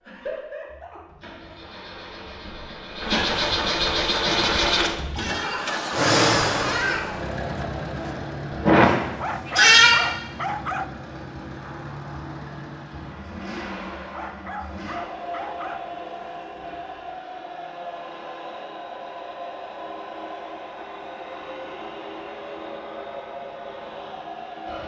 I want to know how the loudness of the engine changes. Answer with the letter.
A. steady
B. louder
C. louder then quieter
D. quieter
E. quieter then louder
D.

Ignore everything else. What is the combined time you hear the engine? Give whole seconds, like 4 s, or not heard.
25 s.